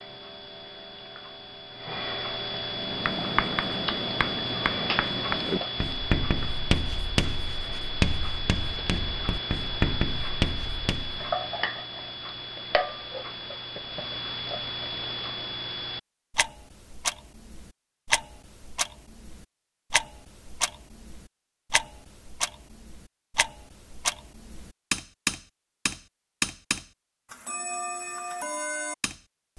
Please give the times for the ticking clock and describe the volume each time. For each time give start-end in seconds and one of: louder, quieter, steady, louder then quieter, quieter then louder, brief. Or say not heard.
0.0-29.5 steady.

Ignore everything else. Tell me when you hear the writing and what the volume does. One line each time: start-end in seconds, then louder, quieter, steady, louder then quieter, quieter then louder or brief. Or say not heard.
2.7-11.3 steady.